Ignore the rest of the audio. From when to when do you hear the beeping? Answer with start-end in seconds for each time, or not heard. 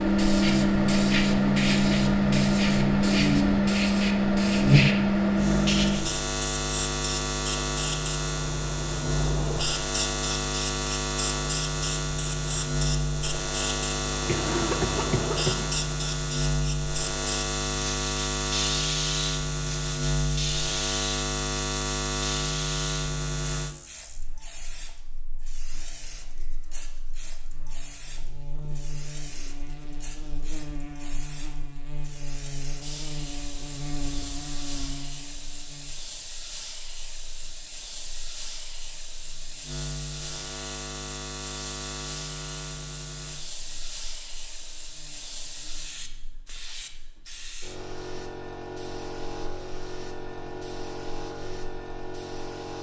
not heard.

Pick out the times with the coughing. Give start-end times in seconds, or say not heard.
14.2-15.8.